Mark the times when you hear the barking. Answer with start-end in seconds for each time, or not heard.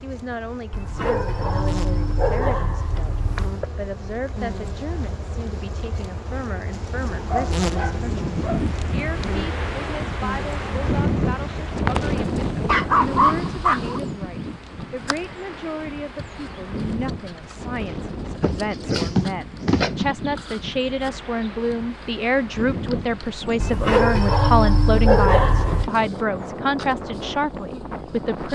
0.7-3.7, 7.3-8.6, 12.2-14.0, 18.4-20.1, 23.6-25.9.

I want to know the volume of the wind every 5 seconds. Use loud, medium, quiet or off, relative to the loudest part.
off, loud, loud, medium, medium, medium.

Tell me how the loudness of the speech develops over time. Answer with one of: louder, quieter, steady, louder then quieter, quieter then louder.
louder.